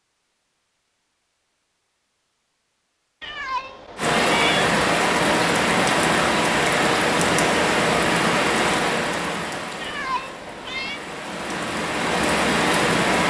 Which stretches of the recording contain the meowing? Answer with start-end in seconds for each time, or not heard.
3.2-4.6, 9.8-11.0.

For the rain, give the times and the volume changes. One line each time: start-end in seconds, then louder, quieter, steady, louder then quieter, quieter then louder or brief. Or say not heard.
4.0-13.2 quieter then louder.